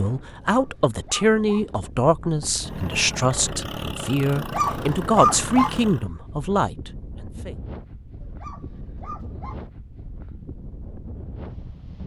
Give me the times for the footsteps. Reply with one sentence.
The footsteps can't be heard in this clip.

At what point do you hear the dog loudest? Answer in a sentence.
The volume of the dog peaks at 5 seconds.